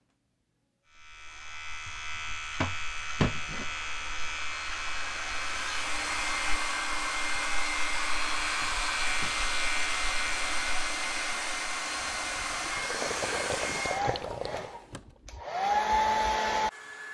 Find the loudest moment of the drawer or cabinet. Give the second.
3 s.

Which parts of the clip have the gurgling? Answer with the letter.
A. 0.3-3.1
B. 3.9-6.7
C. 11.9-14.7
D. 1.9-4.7
C.